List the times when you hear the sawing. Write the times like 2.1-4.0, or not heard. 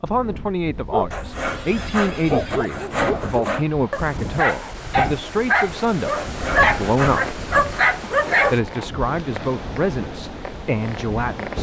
1.1-3.6, 6.1-7.8.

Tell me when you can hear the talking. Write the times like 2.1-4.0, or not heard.
0.0-7.4, 8.4-11.5.